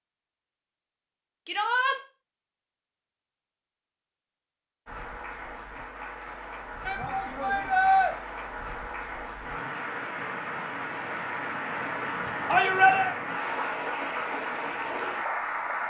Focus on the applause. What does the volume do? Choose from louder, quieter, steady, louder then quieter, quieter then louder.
louder.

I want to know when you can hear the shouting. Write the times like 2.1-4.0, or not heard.
1.4-1.9, 6.8-8.1, 12.5-13.2.